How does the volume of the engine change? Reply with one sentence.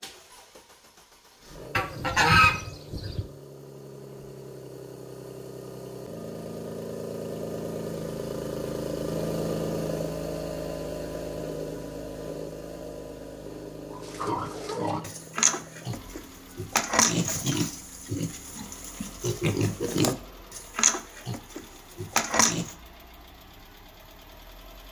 The loudness of the engine goes up, then down.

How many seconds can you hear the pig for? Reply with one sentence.
The pig can be heard for 9 seconds in total.